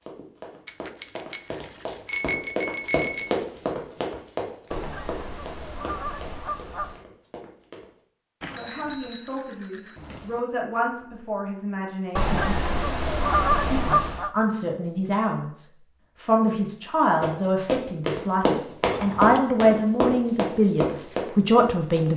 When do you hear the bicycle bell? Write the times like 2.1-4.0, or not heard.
0.7-3.4, 8.4-10.4, 18.8-19.6.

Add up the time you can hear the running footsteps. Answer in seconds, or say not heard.
13 s.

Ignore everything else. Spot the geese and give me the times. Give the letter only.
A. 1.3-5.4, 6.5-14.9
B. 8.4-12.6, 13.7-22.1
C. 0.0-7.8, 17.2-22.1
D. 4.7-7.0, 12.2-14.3
D.